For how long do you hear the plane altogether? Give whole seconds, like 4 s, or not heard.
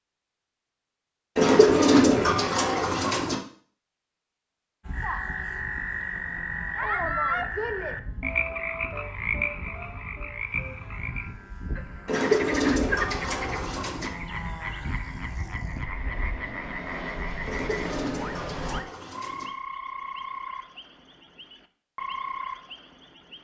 14 s.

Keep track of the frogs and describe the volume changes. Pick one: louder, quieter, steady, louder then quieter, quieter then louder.
quieter.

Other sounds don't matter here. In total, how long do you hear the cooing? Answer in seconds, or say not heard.
6 s.